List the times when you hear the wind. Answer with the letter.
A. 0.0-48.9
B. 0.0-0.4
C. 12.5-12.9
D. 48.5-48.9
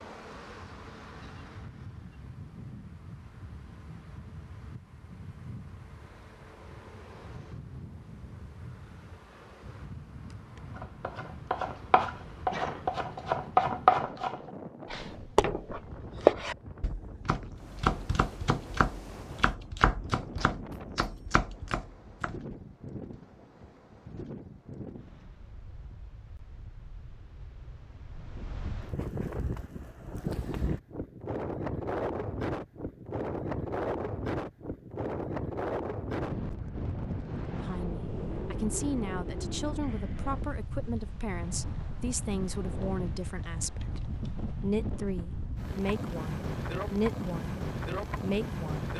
A.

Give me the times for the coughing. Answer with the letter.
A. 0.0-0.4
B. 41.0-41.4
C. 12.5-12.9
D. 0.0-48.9
C.